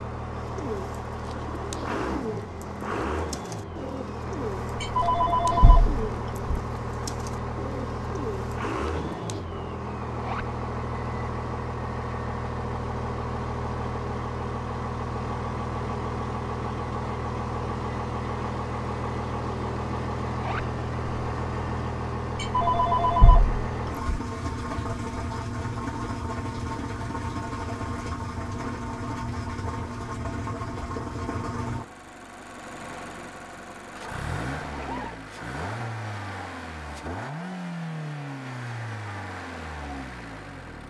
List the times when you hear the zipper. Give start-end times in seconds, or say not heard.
10.1-10.5, 20.2-20.7, 34.6-35.2.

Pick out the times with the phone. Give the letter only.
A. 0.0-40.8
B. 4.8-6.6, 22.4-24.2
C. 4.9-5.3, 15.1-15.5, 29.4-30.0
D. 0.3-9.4
B.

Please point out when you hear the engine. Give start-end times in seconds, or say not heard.
0.0-40.8.